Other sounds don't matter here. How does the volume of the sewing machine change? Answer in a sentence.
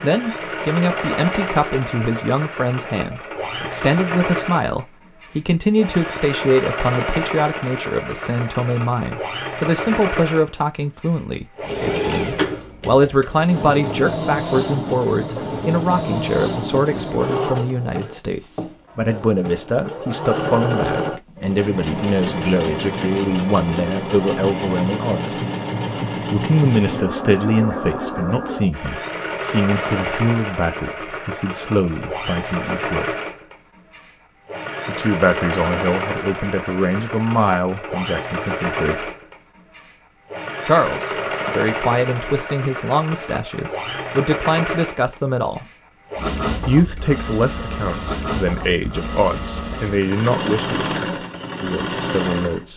The volume of the sewing machine stays about the same.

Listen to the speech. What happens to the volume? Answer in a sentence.
The loudness of the speech stays about the same.